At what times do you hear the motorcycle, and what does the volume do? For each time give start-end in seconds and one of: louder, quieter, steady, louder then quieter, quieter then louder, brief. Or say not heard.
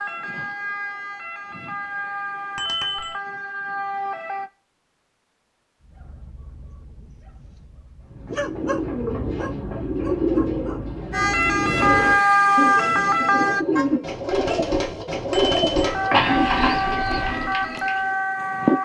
not heard.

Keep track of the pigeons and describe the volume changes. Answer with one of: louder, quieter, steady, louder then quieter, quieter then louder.
steady.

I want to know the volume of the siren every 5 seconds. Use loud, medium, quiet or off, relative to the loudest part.
quiet, off, loud, medium.